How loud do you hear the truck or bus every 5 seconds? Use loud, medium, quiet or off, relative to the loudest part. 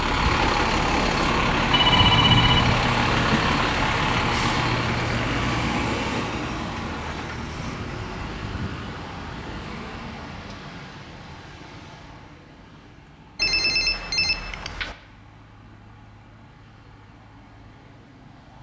loud, medium, quiet, quiet.